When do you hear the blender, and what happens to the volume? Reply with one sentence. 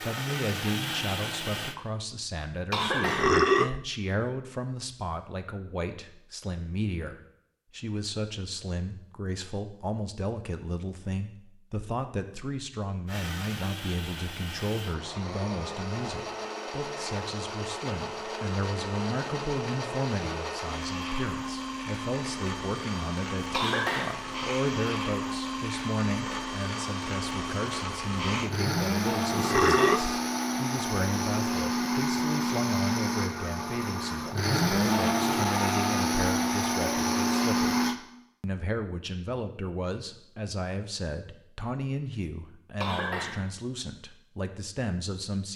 The blender can be heard briefly from 0.0 to 1.8 s; and from 13.1 to 38.0 s, getting louder.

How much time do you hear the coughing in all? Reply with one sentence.
You can hear the coughing for 2 seconds altogether.